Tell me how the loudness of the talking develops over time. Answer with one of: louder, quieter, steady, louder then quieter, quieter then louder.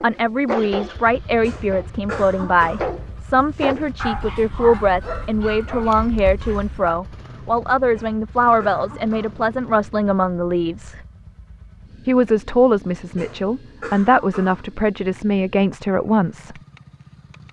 steady.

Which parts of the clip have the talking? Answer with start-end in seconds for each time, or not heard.
0.0-11.0, 12.1-16.6.